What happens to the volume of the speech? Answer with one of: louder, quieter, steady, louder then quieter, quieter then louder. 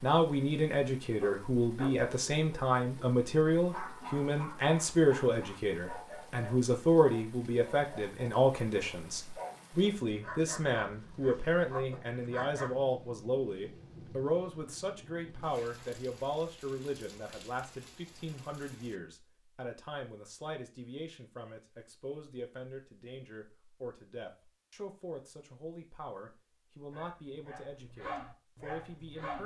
quieter.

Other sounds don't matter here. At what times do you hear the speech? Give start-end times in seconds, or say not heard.
0.0-29.4.